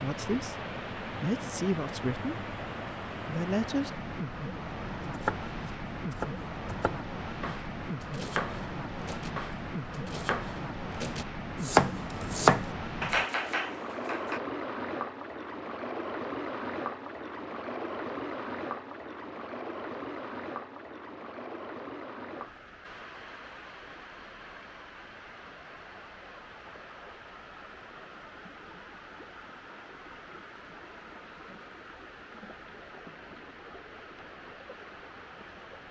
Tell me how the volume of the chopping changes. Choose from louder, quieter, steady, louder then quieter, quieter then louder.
louder.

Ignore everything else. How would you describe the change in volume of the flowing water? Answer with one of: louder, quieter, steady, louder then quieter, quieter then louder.
quieter.